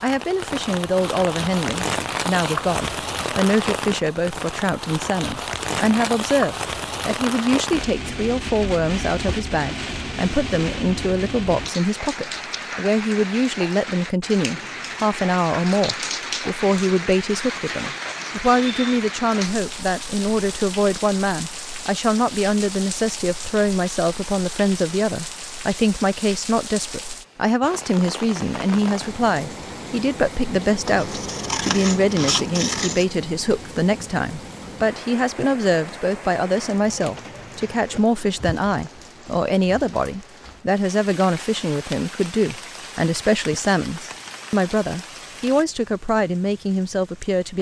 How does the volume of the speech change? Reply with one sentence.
The volume of the speech stays about the same.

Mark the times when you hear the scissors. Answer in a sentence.
You can hear the scissors from 30.9 to 33.0 s.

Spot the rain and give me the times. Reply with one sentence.
You can hear the rain from 0.0 to 47.5 s.